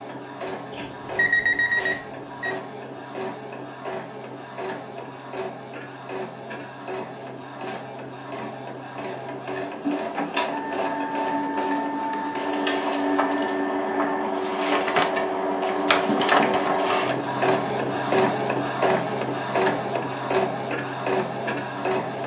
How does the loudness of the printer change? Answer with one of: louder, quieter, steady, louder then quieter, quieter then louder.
louder.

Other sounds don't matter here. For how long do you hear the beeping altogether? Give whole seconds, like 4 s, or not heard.
2 s.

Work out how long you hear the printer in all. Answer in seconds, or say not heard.
22 s.